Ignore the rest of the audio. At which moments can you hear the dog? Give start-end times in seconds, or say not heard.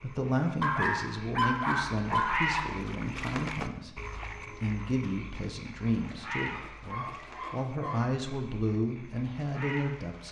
0.6-2.6, 6.5-8.2.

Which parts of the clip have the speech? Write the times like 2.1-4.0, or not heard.
0.0-4.0, 4.6-10.2.